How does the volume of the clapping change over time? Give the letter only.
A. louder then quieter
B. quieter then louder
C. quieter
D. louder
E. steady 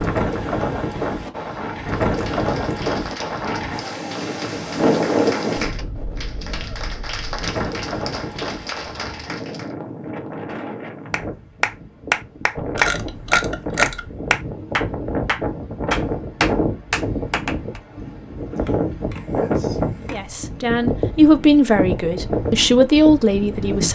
D.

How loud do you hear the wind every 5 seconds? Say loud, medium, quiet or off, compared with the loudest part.
loud, loud, medium, loud, loud.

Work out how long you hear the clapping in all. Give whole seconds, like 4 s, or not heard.
14 s.